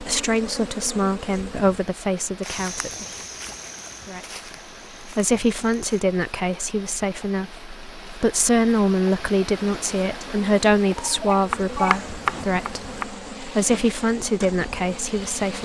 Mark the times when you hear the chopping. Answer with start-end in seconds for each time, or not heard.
11.4-13.1.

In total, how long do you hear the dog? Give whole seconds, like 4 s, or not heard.
not heard.